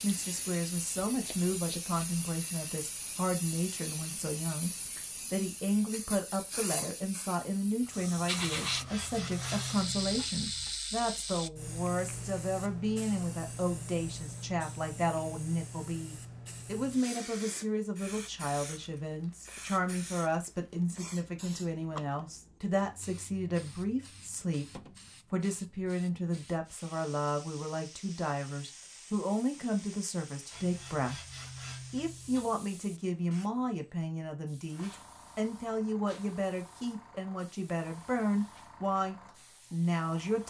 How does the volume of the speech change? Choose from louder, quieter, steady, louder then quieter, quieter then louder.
steady.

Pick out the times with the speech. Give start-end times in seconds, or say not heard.
0.0-31.2, 31.9-40.4.